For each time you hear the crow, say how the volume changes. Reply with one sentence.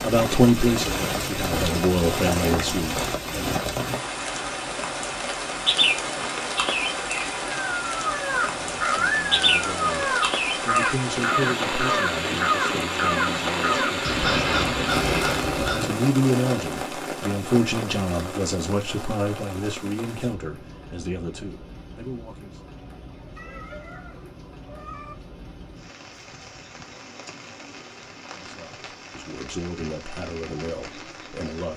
The crow can be heard from 7.5 to 15.9 s, at a steady volume.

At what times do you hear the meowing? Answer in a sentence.
The meowing can be heard from 23.4 to 25.1 s.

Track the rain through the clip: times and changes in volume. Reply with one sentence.
You can hear the rain from 0.0 to 31.7 s, getting quieter.